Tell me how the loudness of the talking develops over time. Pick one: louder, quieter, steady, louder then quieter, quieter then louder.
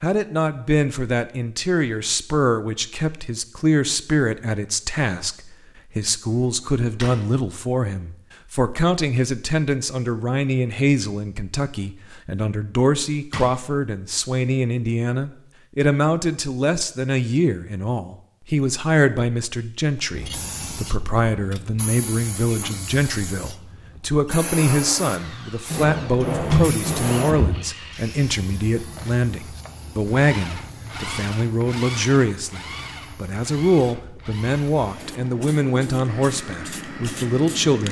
steady.